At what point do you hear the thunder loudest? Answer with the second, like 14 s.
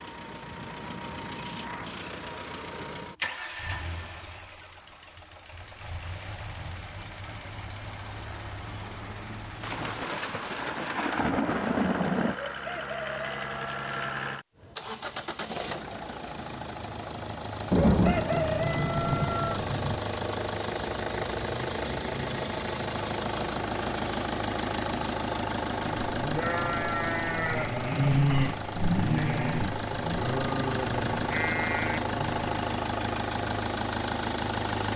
18 s.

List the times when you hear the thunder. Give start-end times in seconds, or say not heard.
9.6-12.3, 17.7-20.0.